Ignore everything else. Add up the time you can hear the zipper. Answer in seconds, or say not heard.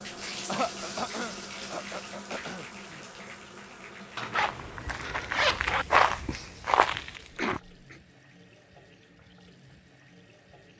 2 s.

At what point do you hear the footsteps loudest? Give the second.
6 s.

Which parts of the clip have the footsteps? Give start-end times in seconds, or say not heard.
4.3-7.6.